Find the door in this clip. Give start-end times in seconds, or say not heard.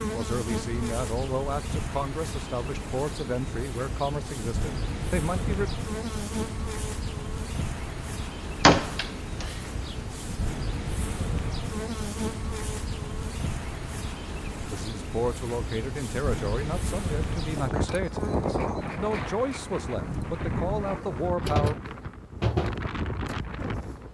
8.6-9.8.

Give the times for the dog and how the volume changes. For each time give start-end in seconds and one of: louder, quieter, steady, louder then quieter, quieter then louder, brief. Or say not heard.
not heard.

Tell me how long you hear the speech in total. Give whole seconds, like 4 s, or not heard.
13 s.